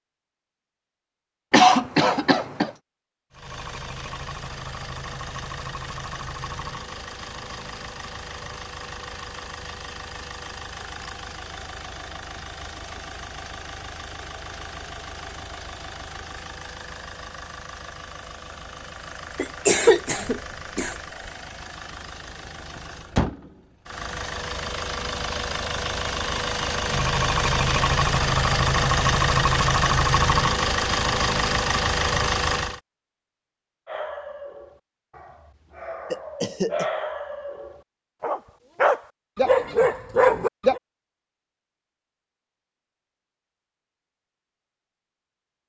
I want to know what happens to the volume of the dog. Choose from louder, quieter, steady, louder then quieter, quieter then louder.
louder.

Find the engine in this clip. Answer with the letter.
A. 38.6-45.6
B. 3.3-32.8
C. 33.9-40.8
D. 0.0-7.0
B.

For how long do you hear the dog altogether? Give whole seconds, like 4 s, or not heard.
7 s.